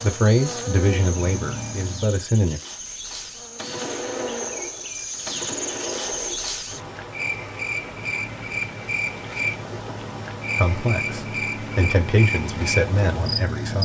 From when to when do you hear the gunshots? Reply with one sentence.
The gunshots can be heard from 3.5 to 6.7 s.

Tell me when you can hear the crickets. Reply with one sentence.
The crickets can be heard from 0.0 to 13.6 s.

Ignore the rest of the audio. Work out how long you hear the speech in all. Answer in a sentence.
You can hear the speech for 6 seconds altogether.